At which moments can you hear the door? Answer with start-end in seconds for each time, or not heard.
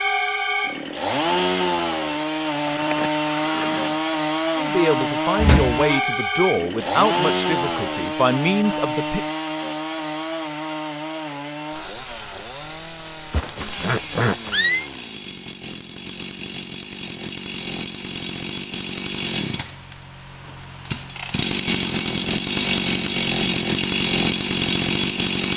5.3-5.8.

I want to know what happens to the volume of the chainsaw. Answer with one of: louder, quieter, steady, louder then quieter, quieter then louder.
quieter then louder.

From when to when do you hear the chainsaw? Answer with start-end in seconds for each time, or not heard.
0.0-25.5.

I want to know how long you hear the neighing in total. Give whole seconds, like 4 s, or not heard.
3 s.